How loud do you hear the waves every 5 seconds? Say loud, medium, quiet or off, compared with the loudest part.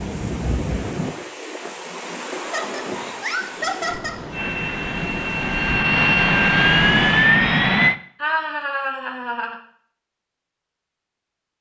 loud, loud, off.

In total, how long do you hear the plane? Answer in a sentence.
The plane can be heard for 4 seconds in total.